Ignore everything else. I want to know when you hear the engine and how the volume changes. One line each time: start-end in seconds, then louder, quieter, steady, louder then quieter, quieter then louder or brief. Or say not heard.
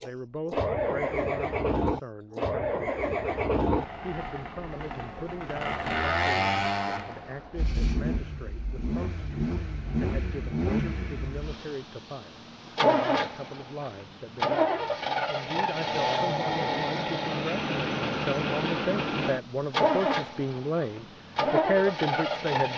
0.0-22.7 steady.